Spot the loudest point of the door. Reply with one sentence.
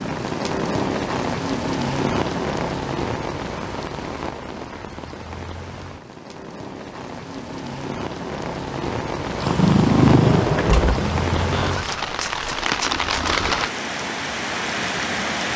The loudest moment of the door is at 11 seconds.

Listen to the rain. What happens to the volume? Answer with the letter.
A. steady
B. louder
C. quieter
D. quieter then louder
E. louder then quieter
D.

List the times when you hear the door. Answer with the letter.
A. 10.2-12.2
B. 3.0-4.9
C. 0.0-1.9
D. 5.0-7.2
A.